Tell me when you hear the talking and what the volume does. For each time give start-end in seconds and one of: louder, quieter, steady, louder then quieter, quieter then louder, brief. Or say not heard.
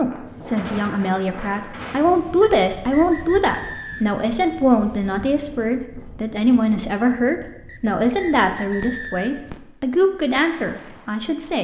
0.0-11.6 steady.